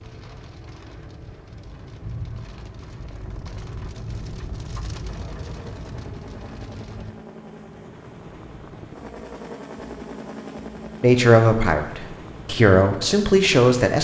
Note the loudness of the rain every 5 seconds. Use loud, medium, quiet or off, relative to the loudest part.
loud, loud, off.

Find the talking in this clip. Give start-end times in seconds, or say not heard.
11.0-13.9.